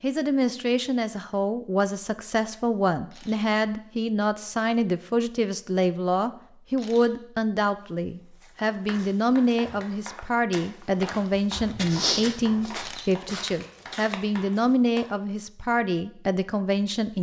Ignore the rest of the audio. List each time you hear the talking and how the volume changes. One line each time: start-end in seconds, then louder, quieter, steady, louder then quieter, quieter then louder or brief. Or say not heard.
0.0-17.1 steady.